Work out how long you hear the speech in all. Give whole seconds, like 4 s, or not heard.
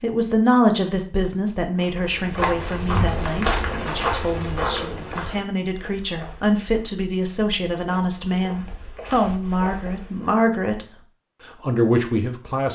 12 s.